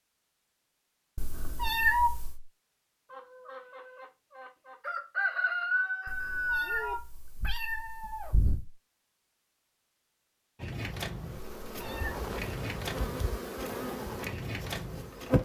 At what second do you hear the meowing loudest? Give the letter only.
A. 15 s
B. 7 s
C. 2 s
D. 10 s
C.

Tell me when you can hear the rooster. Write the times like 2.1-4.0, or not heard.
3.1-7.0.